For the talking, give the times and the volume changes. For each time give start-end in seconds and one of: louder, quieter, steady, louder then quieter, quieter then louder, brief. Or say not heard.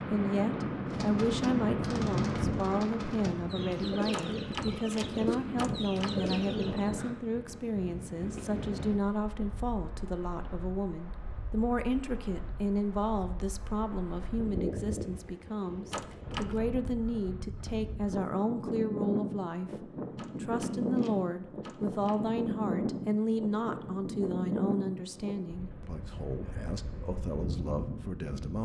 0.0-28.6 steady.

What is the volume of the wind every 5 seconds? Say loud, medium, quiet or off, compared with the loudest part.
loud, medium, medium, medium, loud, medium.